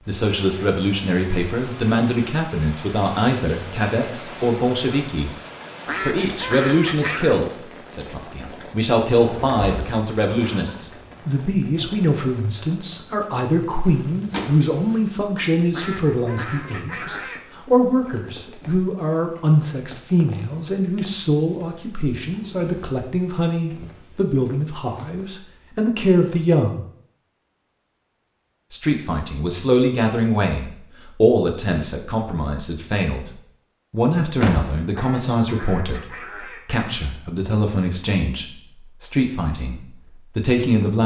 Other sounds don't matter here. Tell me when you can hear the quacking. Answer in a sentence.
You can hear the quacking from 5.8 to 7.4 s, from 15.7 to 17.4 s and from 35.0 to 37.1 s.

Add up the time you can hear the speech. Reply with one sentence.
You can hear the speech for 38 seconds altogether.